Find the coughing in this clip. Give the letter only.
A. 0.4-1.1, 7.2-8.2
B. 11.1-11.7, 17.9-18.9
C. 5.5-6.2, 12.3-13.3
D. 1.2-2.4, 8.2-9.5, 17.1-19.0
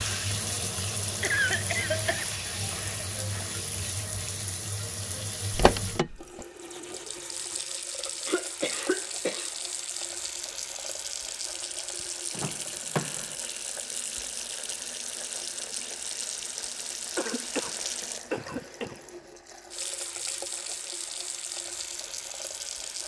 D.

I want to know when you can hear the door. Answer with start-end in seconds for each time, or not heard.
5.5-6.2, 12.3-13.3.